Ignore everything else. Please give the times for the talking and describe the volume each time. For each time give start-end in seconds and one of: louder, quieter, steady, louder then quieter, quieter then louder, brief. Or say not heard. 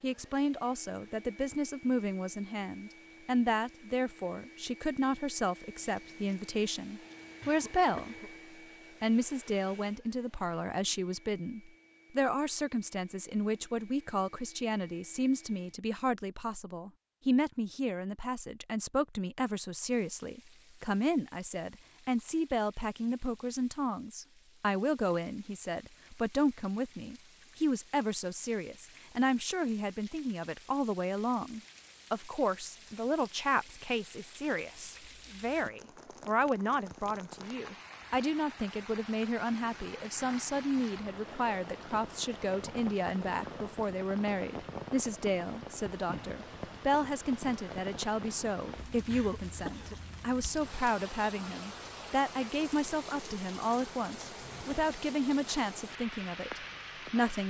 0.0-8.3 steady
9.0-57.4 steady.